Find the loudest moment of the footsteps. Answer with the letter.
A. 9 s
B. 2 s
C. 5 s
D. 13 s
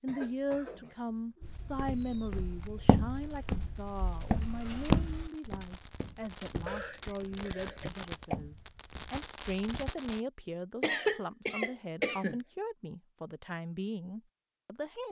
C.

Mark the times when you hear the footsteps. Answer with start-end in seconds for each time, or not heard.
1.4-9.9.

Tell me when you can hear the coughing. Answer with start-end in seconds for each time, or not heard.
0.1-1.6, 6.7-8.3, 10.8-12.4.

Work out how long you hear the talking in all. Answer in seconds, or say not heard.
15 s.